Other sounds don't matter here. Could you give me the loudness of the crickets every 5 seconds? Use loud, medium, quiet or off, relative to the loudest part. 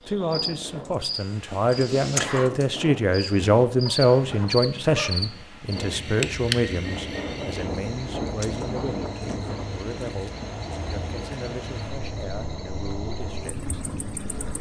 loud, loud, medium.